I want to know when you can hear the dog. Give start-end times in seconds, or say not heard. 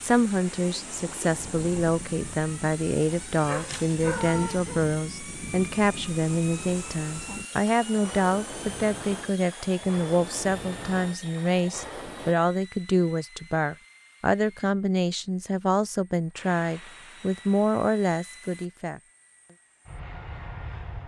3.4-4.9.